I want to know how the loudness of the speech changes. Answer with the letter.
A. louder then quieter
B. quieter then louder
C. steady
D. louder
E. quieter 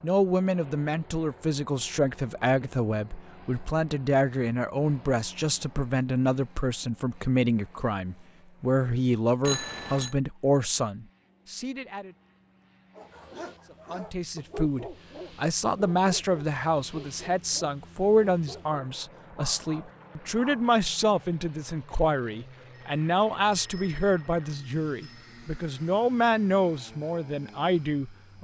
C.